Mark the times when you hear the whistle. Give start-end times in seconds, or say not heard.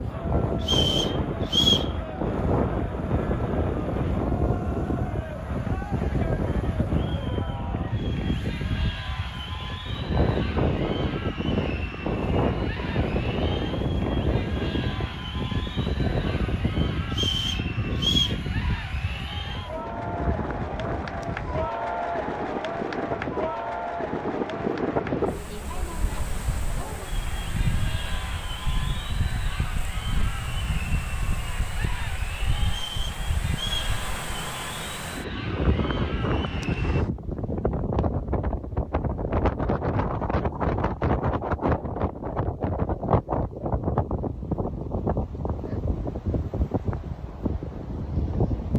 0.6-1.9, 17.1-18.4, 32.6-34.0.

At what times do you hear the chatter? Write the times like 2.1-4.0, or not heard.
0.0-37.0.